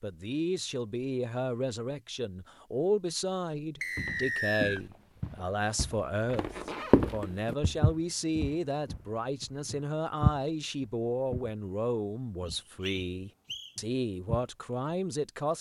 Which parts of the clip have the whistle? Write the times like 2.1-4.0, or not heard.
3.8-4.8, 12.4-13.8.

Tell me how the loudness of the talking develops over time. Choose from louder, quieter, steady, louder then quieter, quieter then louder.
steady.